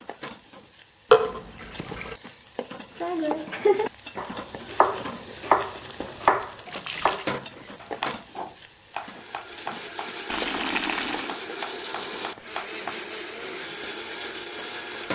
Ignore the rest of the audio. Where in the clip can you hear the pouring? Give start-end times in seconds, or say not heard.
1.1-2.1, 6.7-7.3, 10.2-11.3.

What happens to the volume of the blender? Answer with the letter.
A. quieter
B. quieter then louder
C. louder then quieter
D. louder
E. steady
E.